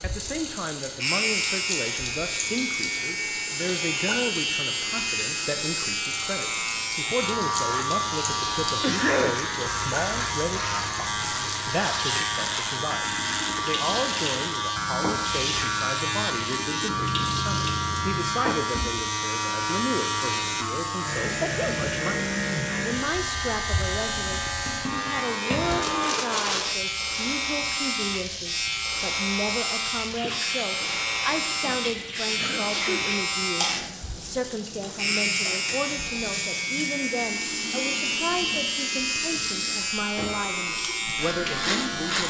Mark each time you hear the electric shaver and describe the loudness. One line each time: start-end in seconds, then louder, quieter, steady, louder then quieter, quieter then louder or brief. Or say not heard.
0.0-42.2 steady.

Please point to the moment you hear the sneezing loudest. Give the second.
9 s.